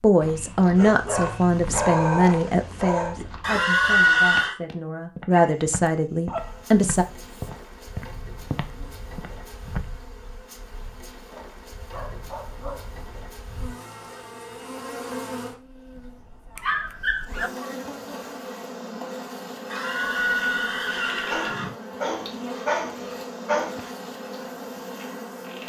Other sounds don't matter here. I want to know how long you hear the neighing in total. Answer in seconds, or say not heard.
3 s.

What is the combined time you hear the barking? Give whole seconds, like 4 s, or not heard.
10 s.